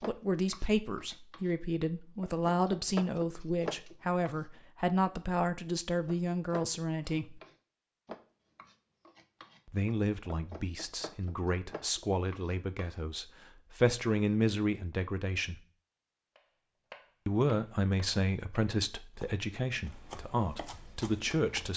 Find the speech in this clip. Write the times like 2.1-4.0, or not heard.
0.1-7.4, 9.7-15.6, 17.2-21.7.